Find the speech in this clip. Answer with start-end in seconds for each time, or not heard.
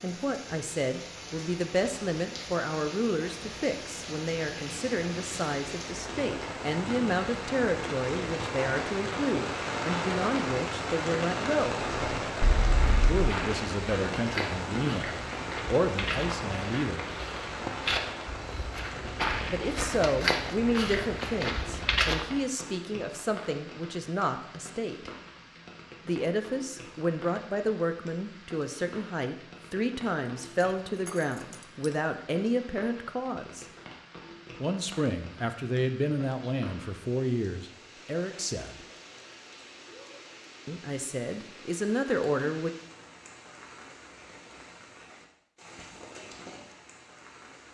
0.0-11.8, 13.1-17.1, 19.5-25.1, 26.1-33.6, 34.6-38.9, 40.6-42.7.